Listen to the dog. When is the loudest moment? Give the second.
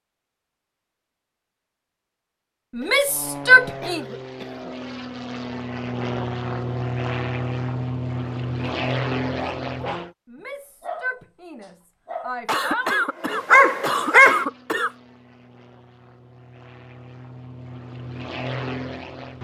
14 s.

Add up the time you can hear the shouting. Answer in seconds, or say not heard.
4 s.